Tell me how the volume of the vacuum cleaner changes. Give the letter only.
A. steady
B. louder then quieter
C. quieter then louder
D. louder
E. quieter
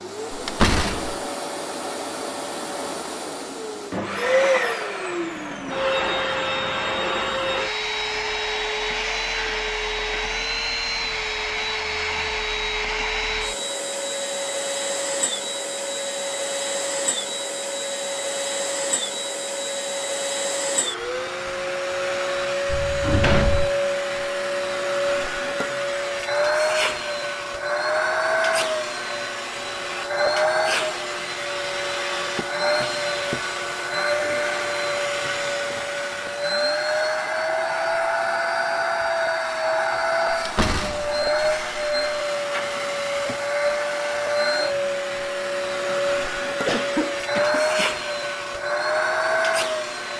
A.